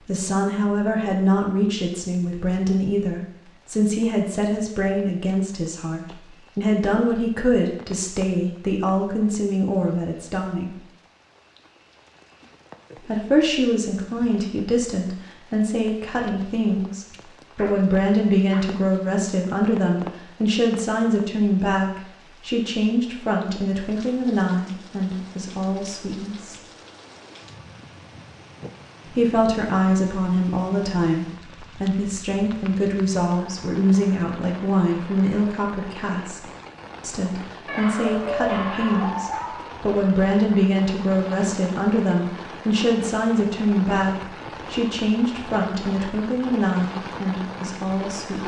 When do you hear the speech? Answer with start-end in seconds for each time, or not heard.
0.1-10.8, 13.1-26.6, 29.1-36.4, 37.0-48.4.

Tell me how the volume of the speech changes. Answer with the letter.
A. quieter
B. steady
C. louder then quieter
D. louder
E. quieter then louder
B.